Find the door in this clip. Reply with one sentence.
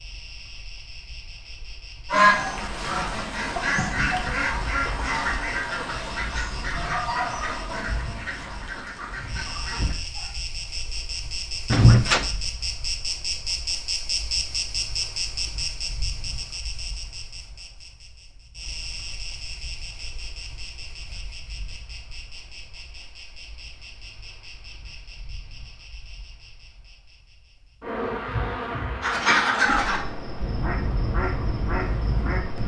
The door can be heard from 11.7 to 12.2 s.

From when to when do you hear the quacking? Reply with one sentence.
The quacking can be heard from 2.1 to 10.3 s and from 29.0 to 32.6 s.